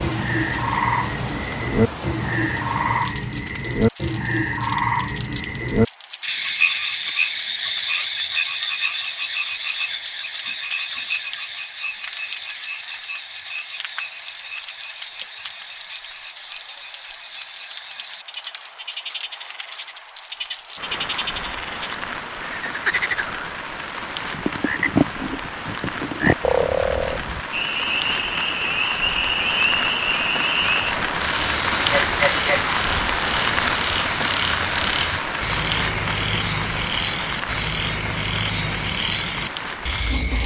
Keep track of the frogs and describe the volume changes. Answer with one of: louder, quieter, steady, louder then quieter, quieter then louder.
quieter then louder.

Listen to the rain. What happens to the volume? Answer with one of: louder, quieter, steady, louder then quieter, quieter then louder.
louder.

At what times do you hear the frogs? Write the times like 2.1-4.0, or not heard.
0.0-40.4.